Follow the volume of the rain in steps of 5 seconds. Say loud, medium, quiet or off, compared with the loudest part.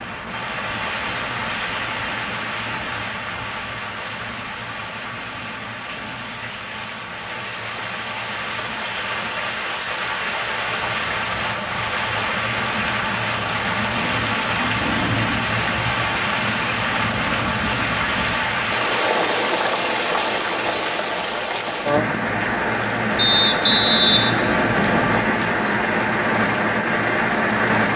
medium, medium, loud, loud, loud, loud.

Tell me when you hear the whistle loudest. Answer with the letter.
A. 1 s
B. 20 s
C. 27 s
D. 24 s
D.